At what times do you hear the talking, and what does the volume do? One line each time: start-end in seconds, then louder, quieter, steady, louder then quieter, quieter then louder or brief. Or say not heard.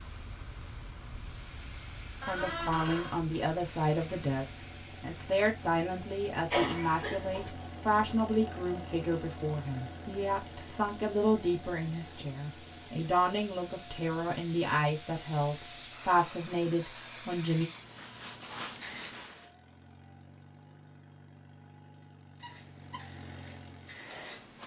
2.2-17.6 steady.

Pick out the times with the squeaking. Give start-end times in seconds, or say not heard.
2.2-3.2, 22.4-23.1.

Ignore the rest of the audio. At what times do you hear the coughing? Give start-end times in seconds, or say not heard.
6.5-7.5.